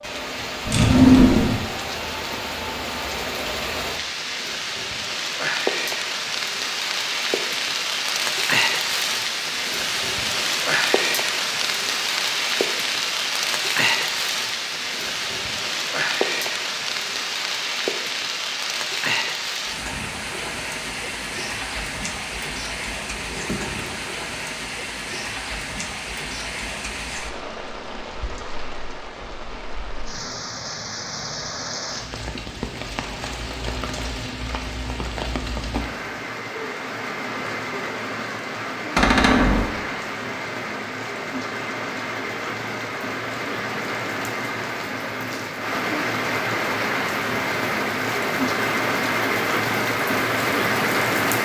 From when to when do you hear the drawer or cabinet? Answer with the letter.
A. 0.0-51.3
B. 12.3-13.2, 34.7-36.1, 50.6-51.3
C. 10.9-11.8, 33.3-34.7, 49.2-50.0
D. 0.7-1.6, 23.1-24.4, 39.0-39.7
D.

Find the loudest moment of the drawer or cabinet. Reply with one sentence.
The volume of the drawer or cabinet peaks at 1 second.